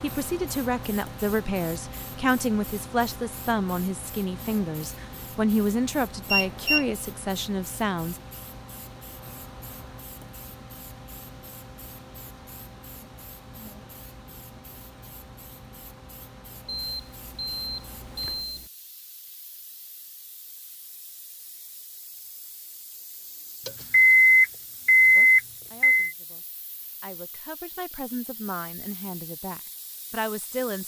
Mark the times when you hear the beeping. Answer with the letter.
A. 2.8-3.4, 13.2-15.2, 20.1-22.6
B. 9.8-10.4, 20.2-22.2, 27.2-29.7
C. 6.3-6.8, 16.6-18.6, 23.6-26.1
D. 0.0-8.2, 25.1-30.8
C.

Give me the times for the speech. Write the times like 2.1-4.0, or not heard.
0.0-8.2, 25.1-30.8.